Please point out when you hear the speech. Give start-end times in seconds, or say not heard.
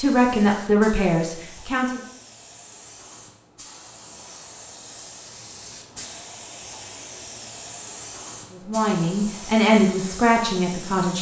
0.0-2.0, 8.5-11.1.